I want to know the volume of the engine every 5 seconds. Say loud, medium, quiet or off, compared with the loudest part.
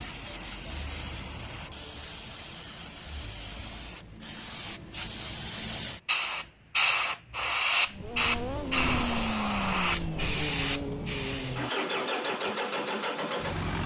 off, loud, loud.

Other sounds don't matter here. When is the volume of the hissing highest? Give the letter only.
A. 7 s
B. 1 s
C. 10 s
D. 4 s
A.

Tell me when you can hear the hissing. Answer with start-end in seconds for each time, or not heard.
0.0-11.7.